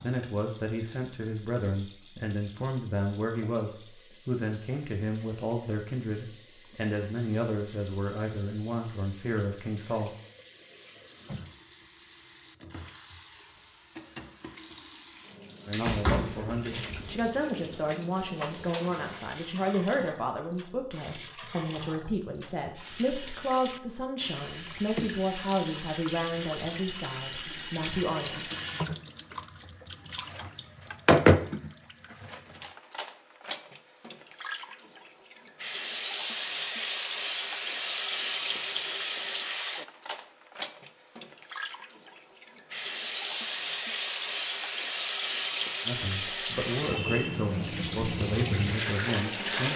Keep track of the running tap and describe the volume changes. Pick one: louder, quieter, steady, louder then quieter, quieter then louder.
louder.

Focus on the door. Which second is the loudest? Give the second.
16 s.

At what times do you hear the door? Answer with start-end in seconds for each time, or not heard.
15.8-17.3.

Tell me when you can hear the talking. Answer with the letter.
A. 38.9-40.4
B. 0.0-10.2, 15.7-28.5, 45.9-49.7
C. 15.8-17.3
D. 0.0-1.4
B.